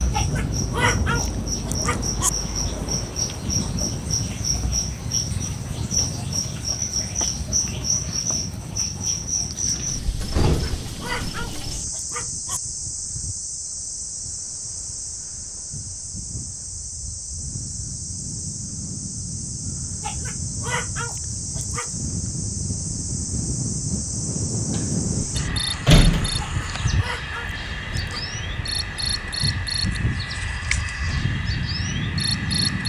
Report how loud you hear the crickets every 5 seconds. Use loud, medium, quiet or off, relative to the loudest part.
loud, loud, medium, medium, medium, loud, loud.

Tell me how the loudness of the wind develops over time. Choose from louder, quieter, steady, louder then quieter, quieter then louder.
quieter then louder.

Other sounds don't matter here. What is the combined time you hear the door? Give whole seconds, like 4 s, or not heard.
3 s.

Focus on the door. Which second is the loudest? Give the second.
26 s.